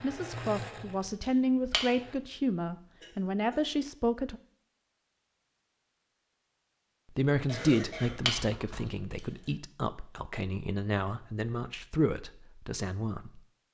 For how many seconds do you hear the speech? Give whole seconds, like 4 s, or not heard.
11 s.